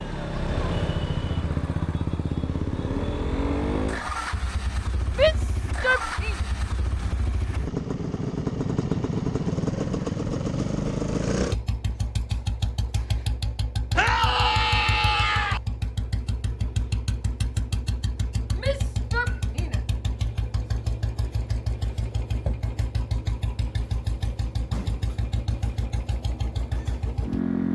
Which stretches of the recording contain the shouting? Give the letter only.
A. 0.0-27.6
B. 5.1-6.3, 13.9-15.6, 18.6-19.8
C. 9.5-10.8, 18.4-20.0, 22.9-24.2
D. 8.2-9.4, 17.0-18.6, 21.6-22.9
B.